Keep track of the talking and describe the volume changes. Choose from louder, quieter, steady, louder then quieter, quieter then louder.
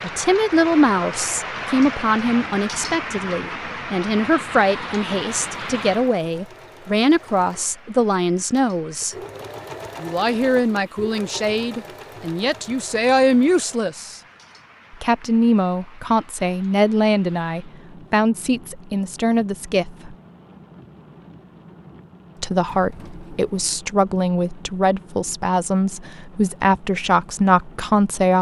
steady.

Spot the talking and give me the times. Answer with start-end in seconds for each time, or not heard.
0.0-9.2, 10.0-14.2, 14.9-20.1, 22.4-28.3.